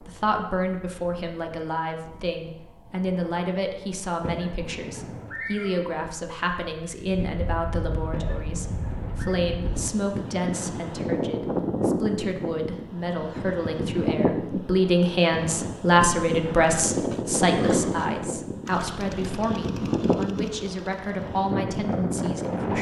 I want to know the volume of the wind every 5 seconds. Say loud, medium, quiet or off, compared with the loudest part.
quiet, medium, loud, loud, loud.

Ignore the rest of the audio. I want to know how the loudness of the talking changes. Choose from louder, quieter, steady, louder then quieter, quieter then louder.
louder then quieter.